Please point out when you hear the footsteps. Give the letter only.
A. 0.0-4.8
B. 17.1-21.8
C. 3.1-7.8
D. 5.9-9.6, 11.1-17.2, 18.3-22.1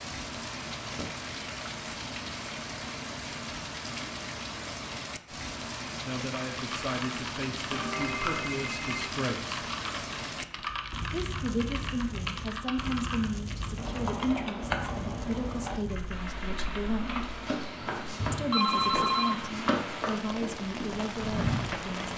B.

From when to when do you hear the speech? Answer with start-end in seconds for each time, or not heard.
5.9-9.6, 11.1-17.2, 18.3-22.1.